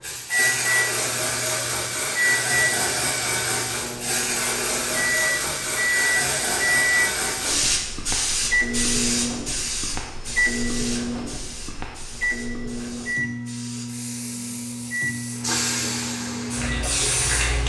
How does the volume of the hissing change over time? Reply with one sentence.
The volume of the hissing goes down, then up.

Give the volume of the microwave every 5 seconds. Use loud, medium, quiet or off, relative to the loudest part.
loud, loud, loud, medium.